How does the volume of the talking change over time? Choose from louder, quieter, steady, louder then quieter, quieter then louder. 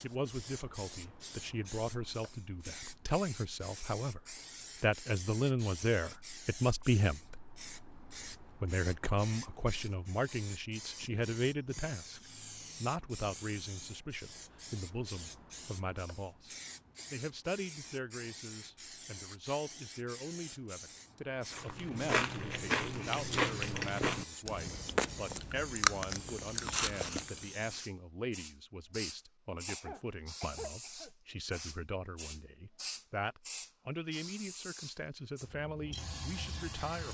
quieter.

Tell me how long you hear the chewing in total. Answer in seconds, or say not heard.
6 s.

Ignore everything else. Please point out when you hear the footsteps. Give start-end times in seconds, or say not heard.
not heard.